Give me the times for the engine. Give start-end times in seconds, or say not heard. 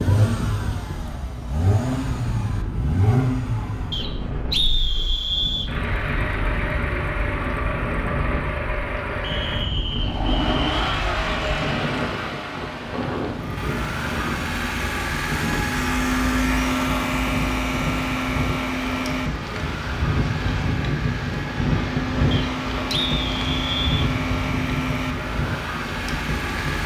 0.0-26.8.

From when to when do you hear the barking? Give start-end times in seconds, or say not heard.
not heard.